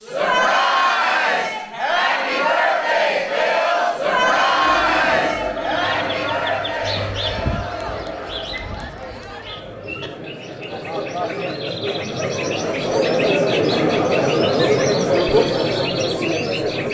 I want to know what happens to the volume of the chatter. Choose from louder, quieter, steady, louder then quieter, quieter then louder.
quieter then louder.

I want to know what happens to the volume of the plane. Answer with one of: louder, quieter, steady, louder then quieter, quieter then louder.
quieter.